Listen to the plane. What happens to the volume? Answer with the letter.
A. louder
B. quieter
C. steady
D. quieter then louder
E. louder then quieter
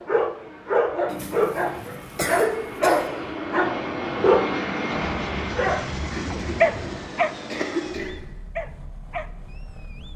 E.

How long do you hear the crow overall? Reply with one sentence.
You can't hear the crow here.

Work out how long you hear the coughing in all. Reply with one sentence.
You can hear the coughing for 4 seconds altogether.